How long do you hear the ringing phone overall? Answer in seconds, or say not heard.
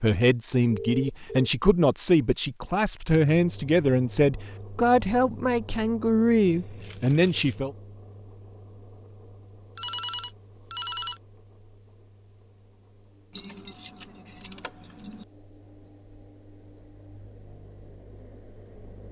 2 s.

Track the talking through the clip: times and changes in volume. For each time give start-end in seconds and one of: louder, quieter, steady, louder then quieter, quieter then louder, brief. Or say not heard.
0.0-7.8 steady.